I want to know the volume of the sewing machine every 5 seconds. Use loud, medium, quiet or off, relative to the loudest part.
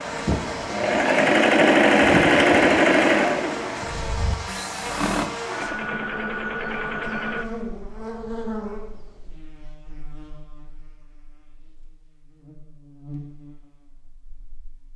loud, medium, off.